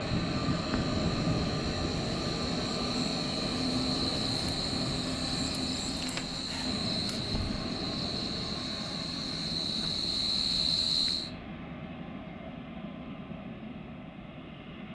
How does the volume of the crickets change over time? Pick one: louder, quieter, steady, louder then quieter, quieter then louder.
louder.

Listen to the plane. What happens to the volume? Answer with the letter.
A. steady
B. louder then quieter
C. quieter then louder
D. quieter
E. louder
D.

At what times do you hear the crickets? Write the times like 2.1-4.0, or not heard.
0.0-11.3.